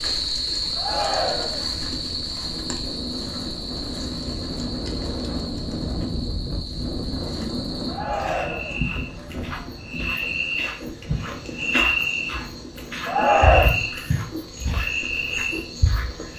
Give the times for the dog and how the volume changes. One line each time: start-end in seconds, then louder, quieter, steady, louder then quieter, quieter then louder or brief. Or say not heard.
not heard.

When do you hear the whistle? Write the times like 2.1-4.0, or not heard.
not heard.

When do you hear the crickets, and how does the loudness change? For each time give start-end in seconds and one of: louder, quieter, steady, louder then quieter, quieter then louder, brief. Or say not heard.
0.0-16.3 quieter then louder.